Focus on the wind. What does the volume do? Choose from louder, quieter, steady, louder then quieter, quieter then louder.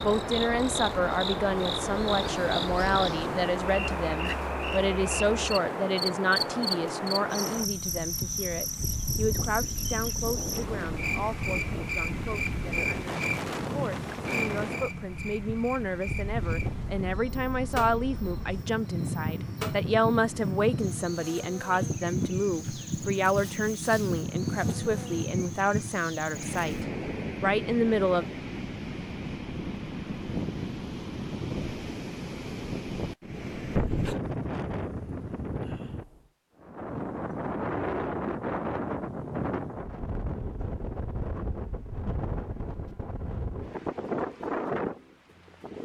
steady.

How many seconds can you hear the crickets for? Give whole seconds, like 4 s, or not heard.
27 s.